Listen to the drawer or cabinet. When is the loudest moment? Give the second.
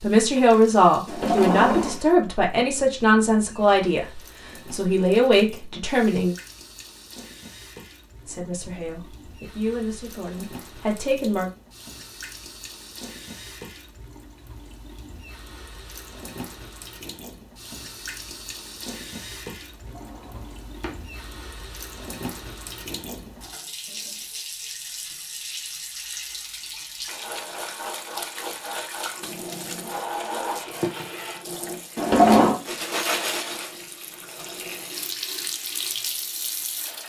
32 s.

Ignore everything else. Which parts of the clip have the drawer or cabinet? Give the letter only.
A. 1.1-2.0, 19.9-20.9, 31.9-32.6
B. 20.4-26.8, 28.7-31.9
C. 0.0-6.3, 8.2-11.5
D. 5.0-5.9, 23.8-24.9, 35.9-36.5
A.